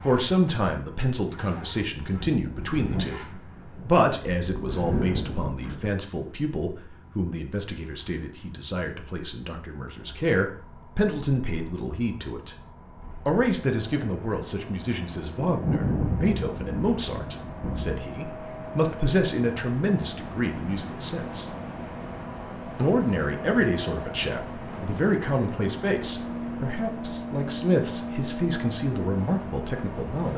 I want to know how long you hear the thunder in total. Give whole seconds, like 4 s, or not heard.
6 s.